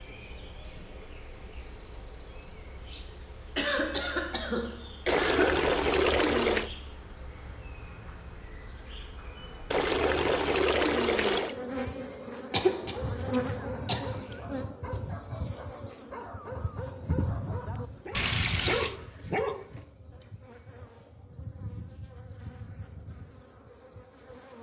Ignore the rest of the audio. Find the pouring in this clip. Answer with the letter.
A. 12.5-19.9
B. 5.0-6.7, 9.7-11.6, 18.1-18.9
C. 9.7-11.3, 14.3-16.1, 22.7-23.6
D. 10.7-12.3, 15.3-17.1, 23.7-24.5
B.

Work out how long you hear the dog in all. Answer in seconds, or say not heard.
7 s.